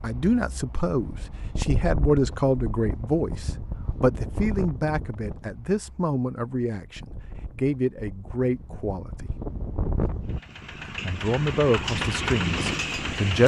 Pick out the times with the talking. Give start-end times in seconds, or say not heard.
0.0-9.3, 10.8-13.4.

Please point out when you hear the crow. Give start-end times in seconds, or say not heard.
not heard.